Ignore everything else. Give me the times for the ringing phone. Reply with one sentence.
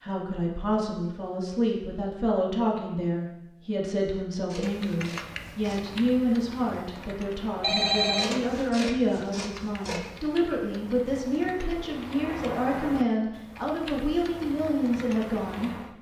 The ringing phone can be heard from 7.6 to 8.4 s.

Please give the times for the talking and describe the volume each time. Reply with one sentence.
The talking can be heard from 0.0 to 15.7 s, at a steady volume.